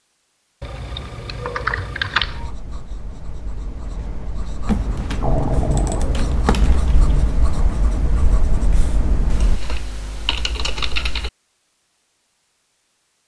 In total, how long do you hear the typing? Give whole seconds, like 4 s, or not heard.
6 s.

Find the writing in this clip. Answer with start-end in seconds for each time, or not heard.
2.2-9.6.